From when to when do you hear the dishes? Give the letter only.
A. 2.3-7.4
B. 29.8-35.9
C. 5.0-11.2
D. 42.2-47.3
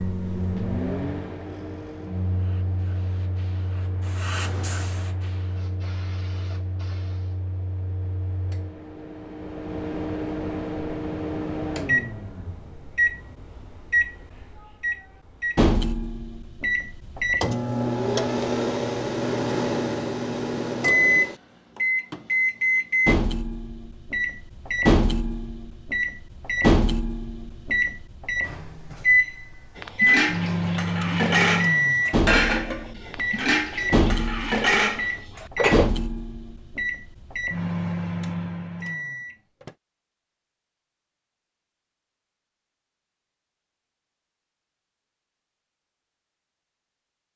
B.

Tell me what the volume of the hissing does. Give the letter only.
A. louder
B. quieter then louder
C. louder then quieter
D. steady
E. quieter
C.